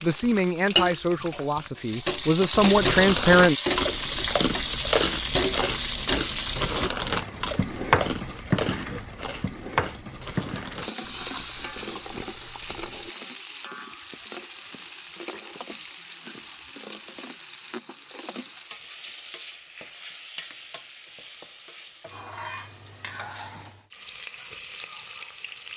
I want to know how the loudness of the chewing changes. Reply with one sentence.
The loudness of the chewing goes down.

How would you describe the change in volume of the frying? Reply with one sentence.
The volume of the frying goes down.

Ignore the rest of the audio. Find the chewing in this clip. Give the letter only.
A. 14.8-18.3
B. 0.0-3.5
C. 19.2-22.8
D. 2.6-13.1
D.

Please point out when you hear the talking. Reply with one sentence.
You can hear the talking from 0.0 to 3.5 s.